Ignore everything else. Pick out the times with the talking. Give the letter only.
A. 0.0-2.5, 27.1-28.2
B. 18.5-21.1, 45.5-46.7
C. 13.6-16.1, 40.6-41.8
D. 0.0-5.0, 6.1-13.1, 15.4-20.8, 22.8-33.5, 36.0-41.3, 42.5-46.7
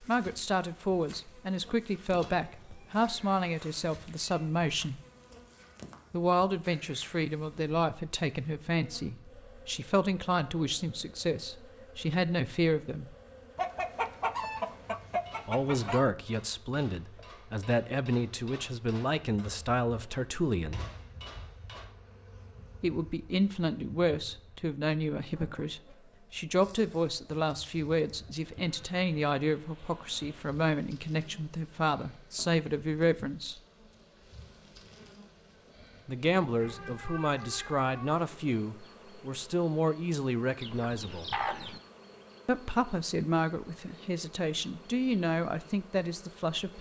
D.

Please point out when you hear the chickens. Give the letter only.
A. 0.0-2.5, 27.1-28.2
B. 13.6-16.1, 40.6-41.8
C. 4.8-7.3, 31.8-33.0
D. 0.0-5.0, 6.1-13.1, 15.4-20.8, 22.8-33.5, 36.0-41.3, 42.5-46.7
B.